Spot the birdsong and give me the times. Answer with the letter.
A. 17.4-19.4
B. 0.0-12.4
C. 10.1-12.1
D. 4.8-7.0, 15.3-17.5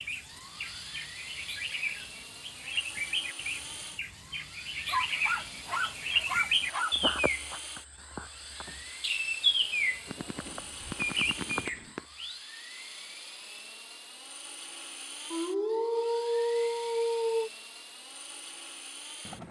B.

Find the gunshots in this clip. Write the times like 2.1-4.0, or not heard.
10.1-12.1.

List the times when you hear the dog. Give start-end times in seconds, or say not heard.
4.8-7.0, 15.3-17.5.